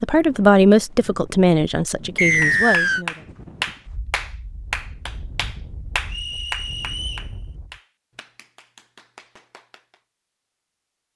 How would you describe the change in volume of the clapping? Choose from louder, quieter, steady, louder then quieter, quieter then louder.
quieter.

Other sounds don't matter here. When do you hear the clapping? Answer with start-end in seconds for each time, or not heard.
2.4-10.0.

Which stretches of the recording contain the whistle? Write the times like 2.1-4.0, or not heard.
2.1-3.0, 6.0-7.3.